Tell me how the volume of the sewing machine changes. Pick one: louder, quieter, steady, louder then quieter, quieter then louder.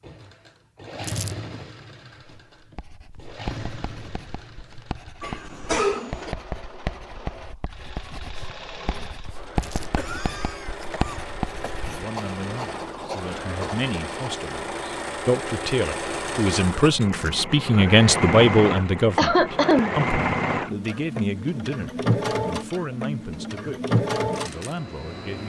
louder.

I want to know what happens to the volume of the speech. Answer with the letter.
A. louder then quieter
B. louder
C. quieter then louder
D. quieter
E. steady
A.